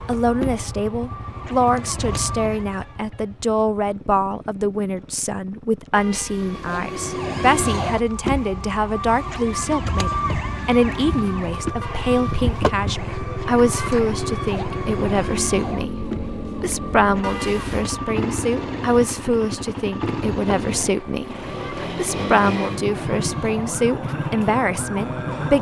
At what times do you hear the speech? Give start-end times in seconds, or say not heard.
0.1-25.5.